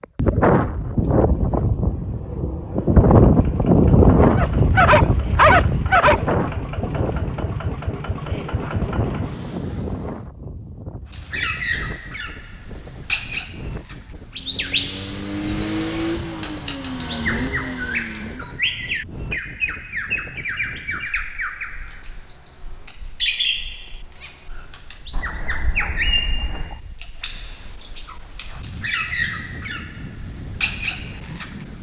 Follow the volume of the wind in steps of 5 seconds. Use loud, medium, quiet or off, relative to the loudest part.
loud, medium, quiet, quiet, quiet, quiet, quiet.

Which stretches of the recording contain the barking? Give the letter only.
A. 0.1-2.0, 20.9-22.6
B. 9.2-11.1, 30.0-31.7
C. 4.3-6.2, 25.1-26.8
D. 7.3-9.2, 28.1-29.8
C.